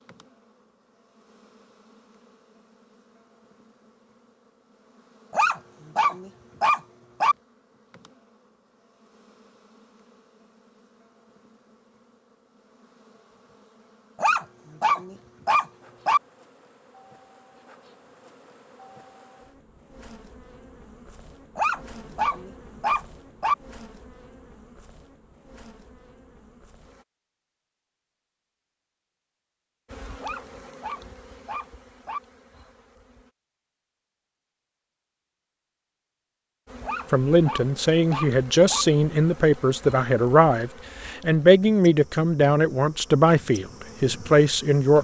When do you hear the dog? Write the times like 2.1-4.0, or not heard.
5.3-7.3, 14.2-16.2, 21.6-23.6, 30.2-32.2, 36.8-38.9.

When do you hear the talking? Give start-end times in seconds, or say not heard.
37.1-44.9.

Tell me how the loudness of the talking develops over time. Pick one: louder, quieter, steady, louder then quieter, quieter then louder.
steady.